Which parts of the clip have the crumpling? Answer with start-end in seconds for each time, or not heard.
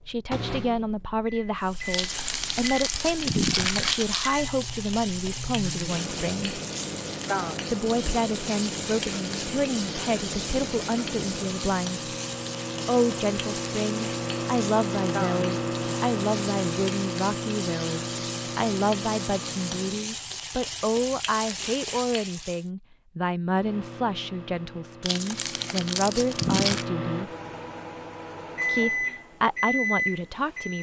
1.9-4.3, 25.0-26.9.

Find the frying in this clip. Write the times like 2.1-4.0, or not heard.
1.6-22.6.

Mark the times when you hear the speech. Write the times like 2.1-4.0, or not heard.
0.1-6.6, 7.7-12.1, 12.8-27.3, 28.6-30.7.